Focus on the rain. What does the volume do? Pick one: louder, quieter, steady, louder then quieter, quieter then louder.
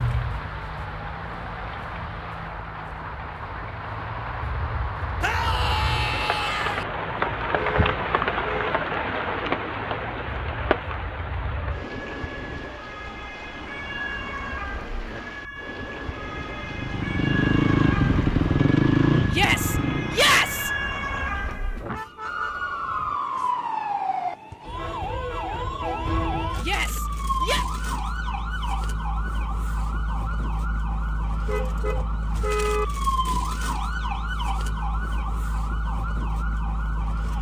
louder then quieter.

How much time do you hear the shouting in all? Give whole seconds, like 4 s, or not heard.
4 s.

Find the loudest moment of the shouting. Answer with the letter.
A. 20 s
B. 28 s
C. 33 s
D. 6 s
A.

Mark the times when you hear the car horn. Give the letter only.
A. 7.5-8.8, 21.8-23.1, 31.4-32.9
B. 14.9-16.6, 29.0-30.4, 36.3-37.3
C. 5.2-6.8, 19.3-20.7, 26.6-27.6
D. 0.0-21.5
A.